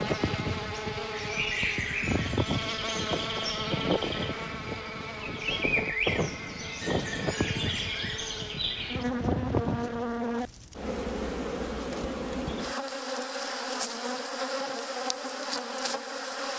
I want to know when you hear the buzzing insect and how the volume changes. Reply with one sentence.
The buzzing insect can be heard from 0.0 to 16.5 s, at a steady volume.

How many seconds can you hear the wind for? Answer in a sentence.
The wind can be heard for 10 seconds in total.